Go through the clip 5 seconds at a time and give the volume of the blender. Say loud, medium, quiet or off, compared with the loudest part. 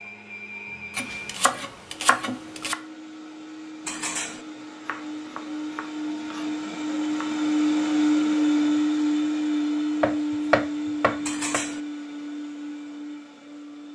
quiet, loud, medium.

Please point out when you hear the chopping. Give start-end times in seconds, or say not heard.
0.9-2.8, 4.8-7.3, 10.0-11.6.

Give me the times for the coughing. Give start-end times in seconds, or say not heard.
not heard.